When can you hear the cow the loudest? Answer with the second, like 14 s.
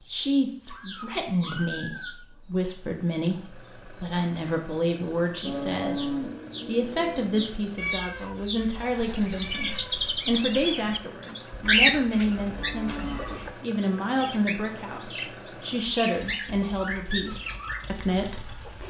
6 s.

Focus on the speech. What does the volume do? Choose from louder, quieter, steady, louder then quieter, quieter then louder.
steady.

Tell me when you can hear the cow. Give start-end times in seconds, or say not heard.
5.5-7.5, 11.5-13.5.